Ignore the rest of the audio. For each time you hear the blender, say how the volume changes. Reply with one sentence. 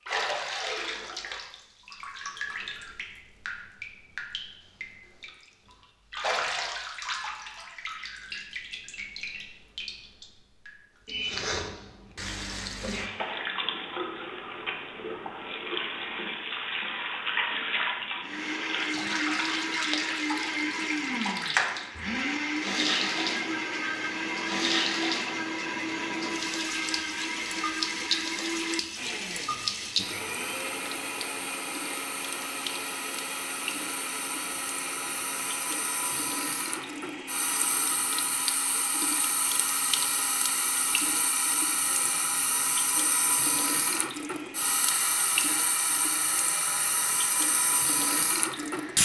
You can hear the blender from 18.2 to 48.9 s, getting quieter.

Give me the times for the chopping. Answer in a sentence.
You can't hear the chopping here.